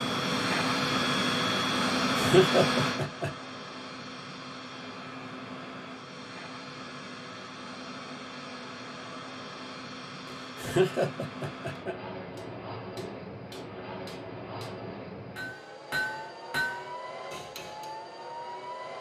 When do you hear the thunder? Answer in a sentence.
The thunder can't be heard in this clip.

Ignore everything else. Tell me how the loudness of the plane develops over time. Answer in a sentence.
The loudness of the plane goes down.